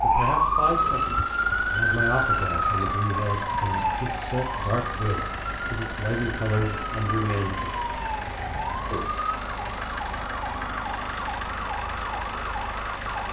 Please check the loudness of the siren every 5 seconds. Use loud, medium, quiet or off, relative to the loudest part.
loud, medium, medium.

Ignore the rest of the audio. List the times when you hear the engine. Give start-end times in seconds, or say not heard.
0.0-13.2.